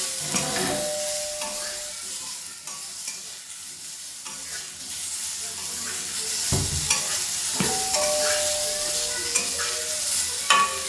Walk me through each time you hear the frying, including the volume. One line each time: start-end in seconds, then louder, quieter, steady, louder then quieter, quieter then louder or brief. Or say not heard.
0.0-10.8 quieter then louder.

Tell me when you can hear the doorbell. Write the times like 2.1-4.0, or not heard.
0.3-1.9, 7.5-9.2.